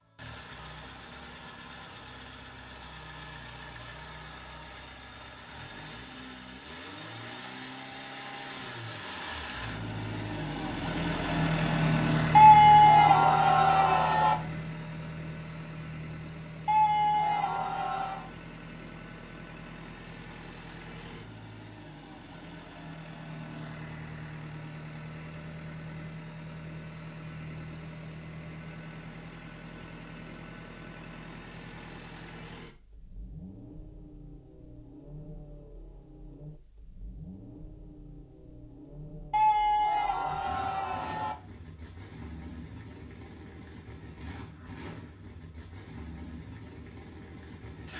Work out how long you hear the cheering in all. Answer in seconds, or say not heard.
6 s.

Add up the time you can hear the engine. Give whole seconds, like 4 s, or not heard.
48 s.